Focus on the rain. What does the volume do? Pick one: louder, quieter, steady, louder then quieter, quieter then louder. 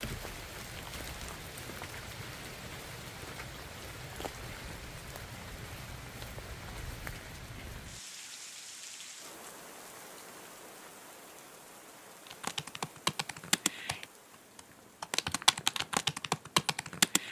quieter.